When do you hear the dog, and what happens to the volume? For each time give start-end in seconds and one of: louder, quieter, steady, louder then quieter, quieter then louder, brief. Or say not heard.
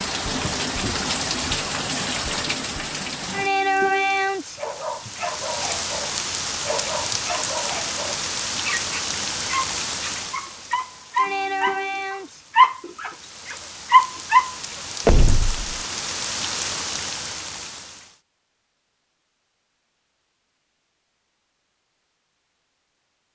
4.5-14.6 louder.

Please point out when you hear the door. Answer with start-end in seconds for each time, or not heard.
15.1-15.7.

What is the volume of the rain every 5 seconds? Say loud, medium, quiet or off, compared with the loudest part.
loud, loud, medium, medium, off.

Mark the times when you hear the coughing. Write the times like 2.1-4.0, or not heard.
not heard.